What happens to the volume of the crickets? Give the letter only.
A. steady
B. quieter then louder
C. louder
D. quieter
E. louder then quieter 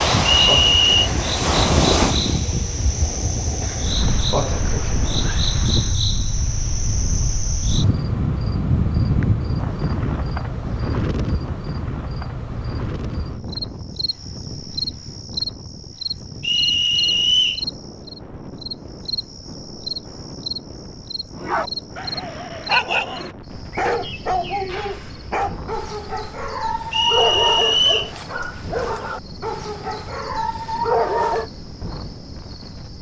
D.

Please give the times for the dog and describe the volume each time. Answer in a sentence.
The dog can be heard from 21.4 to 31.5 s, at a steady volume.